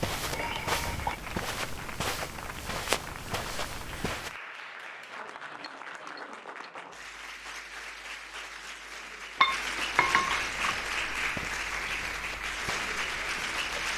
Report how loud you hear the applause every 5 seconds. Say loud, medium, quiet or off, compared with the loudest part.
medium, medium, loud.